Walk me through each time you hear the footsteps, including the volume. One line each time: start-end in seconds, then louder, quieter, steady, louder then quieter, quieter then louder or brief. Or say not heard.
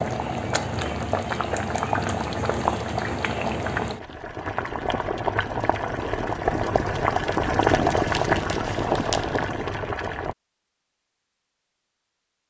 not heard.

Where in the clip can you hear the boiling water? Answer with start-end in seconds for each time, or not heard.
0.0-10.3.